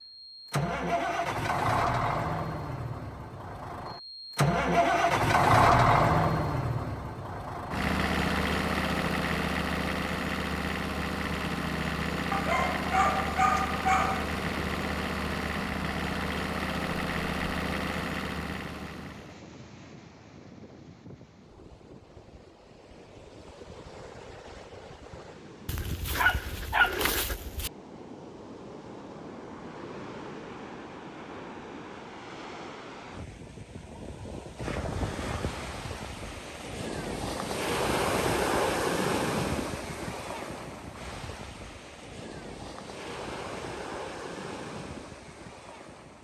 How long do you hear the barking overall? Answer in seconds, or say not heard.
4 s.